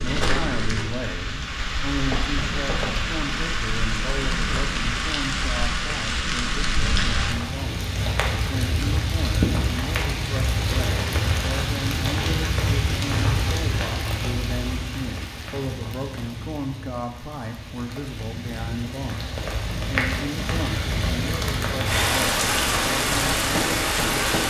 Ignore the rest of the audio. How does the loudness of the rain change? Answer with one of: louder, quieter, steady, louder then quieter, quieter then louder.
quieter then louder.